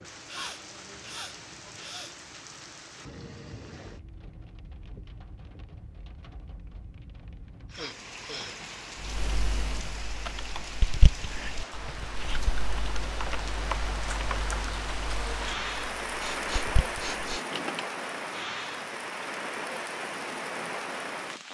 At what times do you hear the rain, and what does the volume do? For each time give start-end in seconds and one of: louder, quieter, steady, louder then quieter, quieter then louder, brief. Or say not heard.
0.0-21.4 louder.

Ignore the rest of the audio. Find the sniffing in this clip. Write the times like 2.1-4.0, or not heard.
0.2-2.1, 7.7-8.6, 16.1-17.4.